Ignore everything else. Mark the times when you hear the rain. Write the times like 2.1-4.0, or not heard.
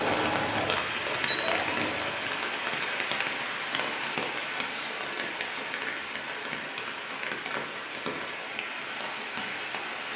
0.0-10.1.